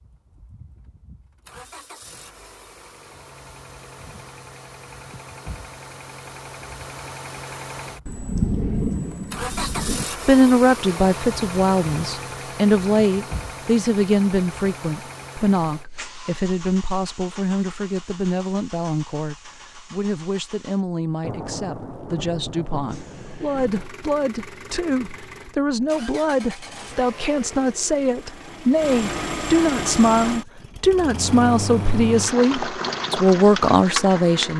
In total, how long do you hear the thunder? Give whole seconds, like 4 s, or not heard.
5 s.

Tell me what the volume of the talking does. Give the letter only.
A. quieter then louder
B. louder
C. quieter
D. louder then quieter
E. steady
A.